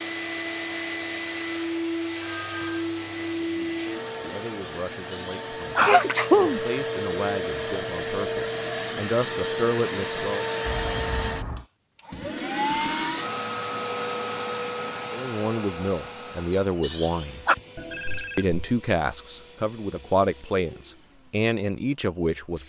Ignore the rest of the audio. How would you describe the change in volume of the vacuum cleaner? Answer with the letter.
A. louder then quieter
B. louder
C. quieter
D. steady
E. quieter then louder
C.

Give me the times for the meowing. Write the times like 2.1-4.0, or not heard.
not heard.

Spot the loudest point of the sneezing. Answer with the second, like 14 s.
6 s.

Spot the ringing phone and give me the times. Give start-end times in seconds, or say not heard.
2.2-2.9, 10.7-11.7, 17.8-18.6.